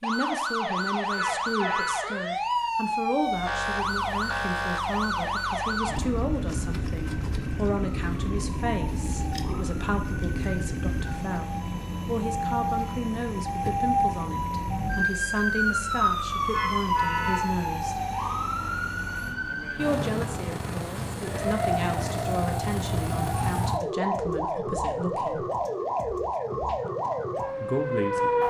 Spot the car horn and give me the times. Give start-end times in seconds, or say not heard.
1.1-2.0, 16.5-17.6.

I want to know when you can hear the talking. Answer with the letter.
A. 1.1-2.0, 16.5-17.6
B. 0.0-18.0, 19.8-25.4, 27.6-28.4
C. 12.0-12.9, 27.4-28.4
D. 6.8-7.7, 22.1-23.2
B.